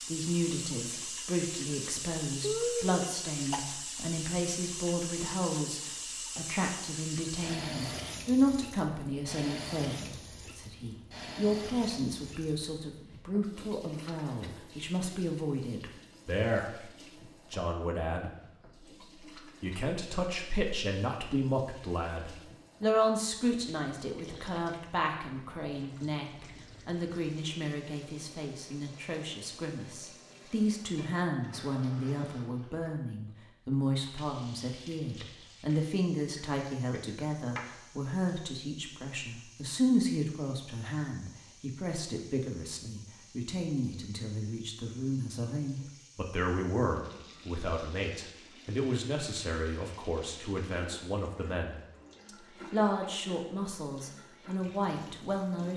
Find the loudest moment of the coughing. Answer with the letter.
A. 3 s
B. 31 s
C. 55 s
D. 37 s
A.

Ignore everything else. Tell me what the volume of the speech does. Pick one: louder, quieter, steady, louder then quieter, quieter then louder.
steady.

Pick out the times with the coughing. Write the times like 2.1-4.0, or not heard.
2.4-3.8, 36.4-38.2.